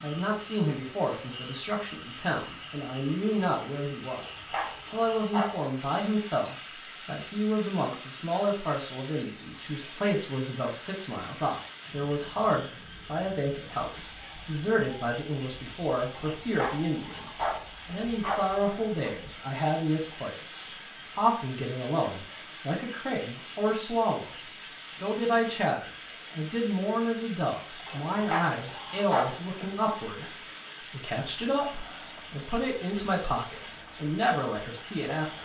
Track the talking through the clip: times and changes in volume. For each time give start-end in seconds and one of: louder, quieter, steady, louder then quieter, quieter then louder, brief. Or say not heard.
0.0-35.3 steady.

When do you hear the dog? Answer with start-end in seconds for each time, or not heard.
4.0-5.5, 16.1-19.1, 27.9-29.6.